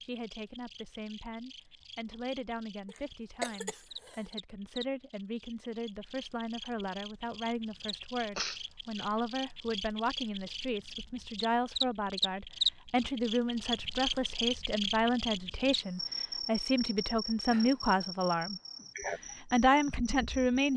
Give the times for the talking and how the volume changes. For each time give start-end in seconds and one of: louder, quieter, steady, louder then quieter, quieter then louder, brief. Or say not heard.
0.0-20.7 louder.